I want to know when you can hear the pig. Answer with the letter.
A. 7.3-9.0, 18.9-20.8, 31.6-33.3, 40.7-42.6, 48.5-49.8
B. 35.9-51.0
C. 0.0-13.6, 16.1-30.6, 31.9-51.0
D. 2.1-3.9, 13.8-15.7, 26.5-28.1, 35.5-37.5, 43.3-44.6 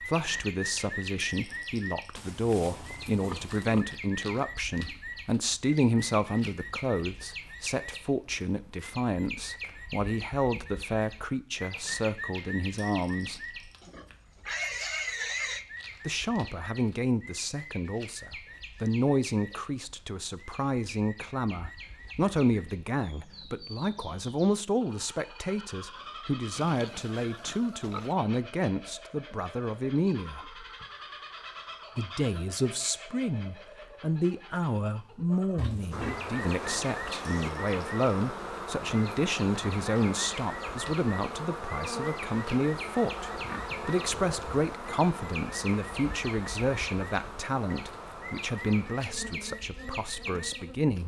D.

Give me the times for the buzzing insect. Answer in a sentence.
You can hear the buzzing insect from 35.9 to 51.0 s.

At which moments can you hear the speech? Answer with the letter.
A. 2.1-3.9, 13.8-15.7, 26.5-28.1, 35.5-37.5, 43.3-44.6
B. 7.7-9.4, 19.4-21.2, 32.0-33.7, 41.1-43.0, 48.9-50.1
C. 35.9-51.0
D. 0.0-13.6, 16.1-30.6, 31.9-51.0
D.